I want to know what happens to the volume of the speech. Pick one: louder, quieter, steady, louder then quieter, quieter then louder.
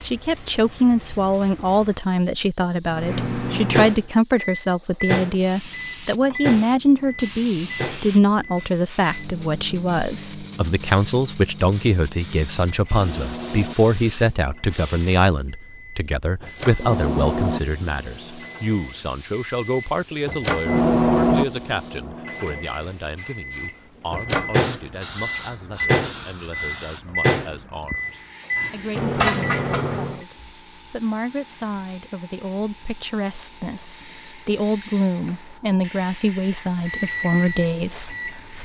quieter then louder.